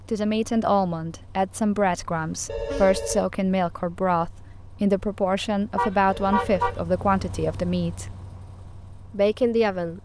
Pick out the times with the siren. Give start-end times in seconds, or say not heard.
not heard.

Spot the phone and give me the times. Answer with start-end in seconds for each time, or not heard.
2.5-3.2, 6.1-6.7.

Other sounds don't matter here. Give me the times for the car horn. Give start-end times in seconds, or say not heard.
2.2-3.0, 5.8-6.8.